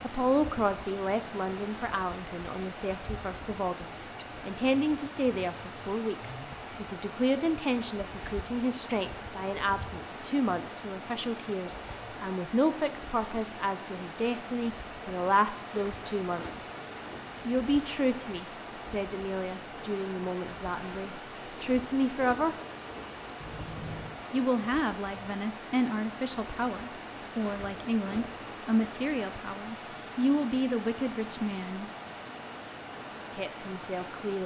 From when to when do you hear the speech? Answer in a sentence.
The speech can be heard from 0.0 to 16.6 s, from 17.4 to 22.6 s, from 24.3 to 31.9 s and from 33.4 to 34.4 s.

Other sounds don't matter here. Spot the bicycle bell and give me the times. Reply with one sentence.
You can hear the bicycle bell from 23.4 to 24.2 s.